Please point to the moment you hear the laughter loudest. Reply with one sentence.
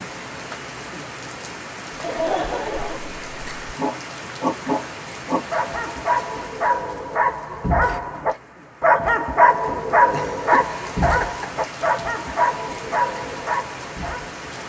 The volume of the laughter peaks at 2 seconds.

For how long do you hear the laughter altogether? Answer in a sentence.
You can hear the laughter for 3 seconds altogether.